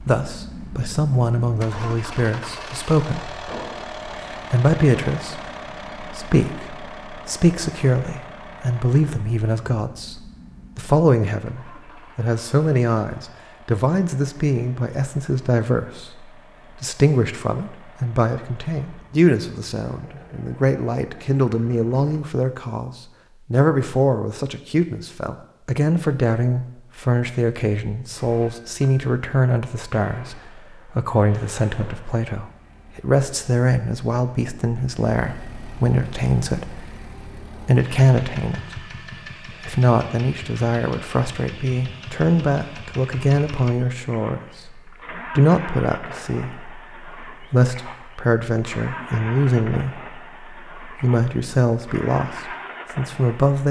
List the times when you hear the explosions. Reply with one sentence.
You can hear the explosions from 3.5 to 3.9 s and from 31.8 to 32.2 s.